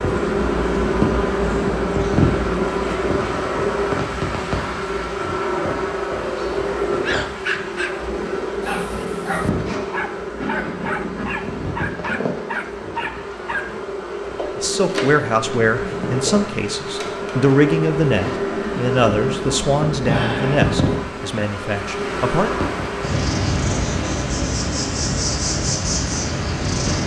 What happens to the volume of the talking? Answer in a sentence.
The volume of the talking goes down.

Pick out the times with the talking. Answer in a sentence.
The talking can be heard from 14.6 to 22.5 s.